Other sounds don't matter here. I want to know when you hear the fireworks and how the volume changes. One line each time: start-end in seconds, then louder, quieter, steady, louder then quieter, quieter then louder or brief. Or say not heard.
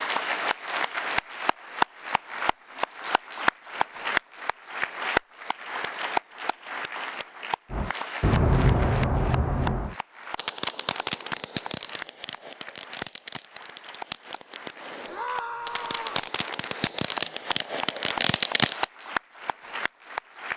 7.7-18.9 quieter then louder.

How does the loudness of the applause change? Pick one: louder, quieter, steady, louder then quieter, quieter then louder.
quieter then louder.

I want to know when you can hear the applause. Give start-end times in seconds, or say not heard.
0.0-20.5.